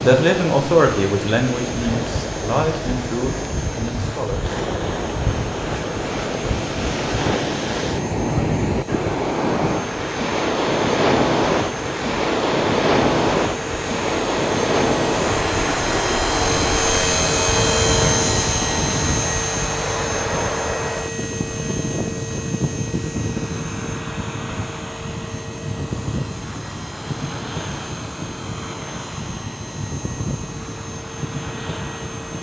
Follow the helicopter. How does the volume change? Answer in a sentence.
The volume of the helicopter goes up, then down.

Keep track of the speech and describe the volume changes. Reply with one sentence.
The volume of the speech goes down.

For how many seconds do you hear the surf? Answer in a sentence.
The surf can be heard for 32 seconds in total.